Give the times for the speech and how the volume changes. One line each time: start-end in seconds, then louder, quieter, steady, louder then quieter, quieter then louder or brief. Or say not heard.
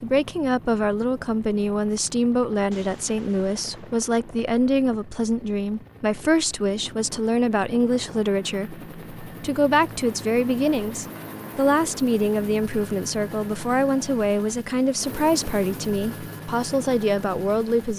0.0-17.9 steady.